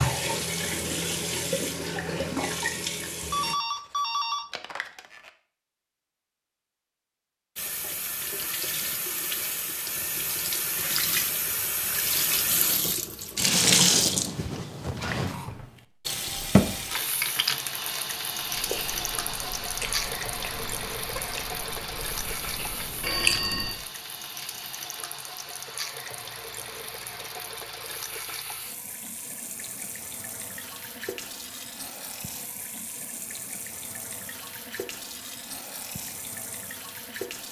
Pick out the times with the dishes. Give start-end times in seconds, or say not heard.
not heard.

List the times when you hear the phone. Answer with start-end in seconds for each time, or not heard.
3.3-5.3, 23.0-23.8.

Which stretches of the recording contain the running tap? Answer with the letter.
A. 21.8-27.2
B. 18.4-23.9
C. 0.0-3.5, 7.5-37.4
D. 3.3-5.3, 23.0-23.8
C.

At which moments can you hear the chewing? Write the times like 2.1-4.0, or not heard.
18.4-23.9.